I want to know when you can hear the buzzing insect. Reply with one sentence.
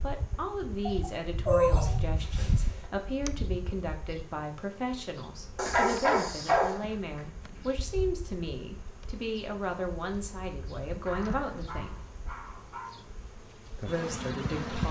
The buzzing insect can be heard from 0.0 to 14.8 s.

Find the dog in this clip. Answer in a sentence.
You can hear the dog from 0.8 to 2.9 s, from 5.5 to 6.8 s and from 11.1 to 13.0 s.